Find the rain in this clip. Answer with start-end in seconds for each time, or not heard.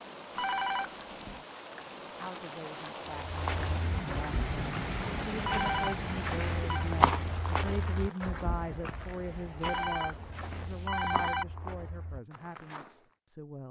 0.0-8.3.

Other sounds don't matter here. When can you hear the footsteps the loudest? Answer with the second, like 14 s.
7 s.